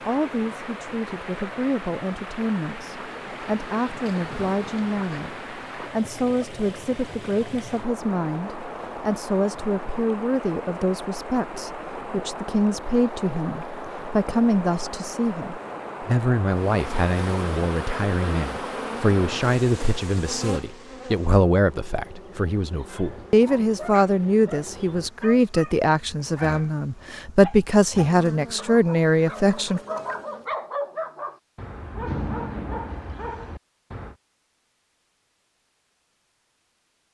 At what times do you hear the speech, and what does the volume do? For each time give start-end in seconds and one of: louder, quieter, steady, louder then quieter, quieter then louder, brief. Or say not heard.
0.1-29.8 louder.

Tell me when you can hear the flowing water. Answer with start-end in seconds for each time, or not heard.
0.0-19.6.